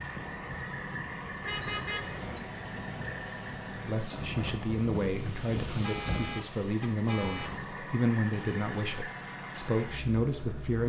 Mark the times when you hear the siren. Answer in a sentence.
The siren can't be heard in this clip.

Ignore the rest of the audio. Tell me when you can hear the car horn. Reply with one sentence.
You can hear the car horn from 1.4 to 2.5 s and from 5.7 to 7.5 s.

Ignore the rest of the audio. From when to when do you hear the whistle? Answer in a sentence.
You can't hear the whistle here.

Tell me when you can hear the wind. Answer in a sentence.
You can hear the wind from 0.0 to 7.8 s.